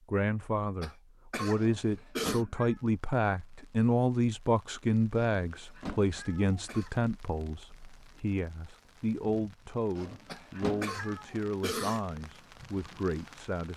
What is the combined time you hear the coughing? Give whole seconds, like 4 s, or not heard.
4 s.